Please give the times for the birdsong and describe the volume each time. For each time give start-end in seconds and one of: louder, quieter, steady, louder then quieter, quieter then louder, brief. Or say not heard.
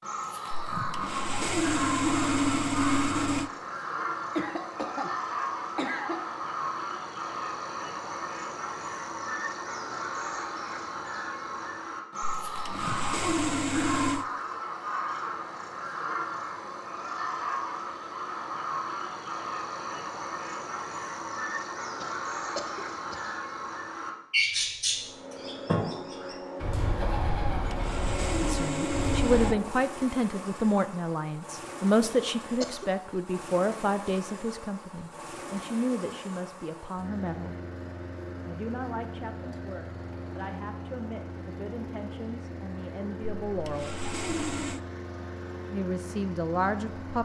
0.0-29.6 steady.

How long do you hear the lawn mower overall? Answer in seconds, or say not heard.
22 s.